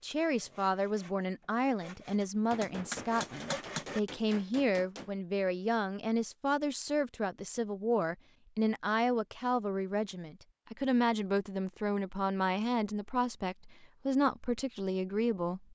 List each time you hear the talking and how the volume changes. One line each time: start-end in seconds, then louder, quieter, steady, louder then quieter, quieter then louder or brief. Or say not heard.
0.0-15.6 steady.